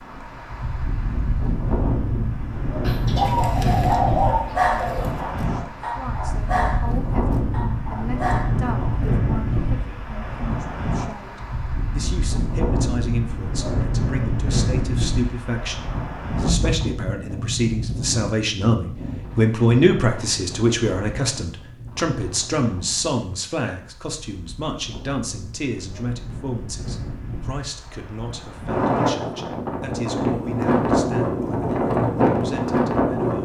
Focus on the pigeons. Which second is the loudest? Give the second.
4 s.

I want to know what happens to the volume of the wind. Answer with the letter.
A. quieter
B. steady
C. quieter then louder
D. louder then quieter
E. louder
C.